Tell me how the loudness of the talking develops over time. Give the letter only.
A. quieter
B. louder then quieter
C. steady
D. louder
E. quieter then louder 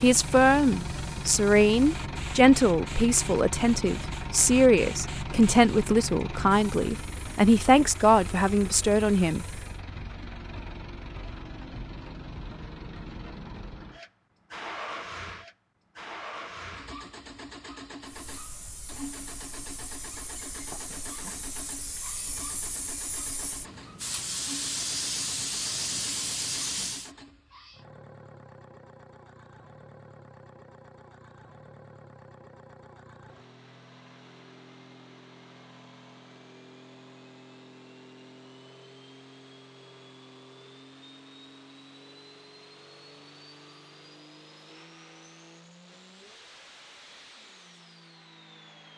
C.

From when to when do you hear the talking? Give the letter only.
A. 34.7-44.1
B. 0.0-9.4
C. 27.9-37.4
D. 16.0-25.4
B.